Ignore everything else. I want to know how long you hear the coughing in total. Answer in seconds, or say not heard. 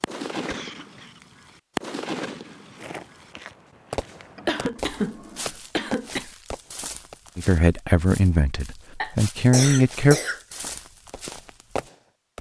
4 s.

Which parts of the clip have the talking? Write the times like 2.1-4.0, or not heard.
7.3-10.2.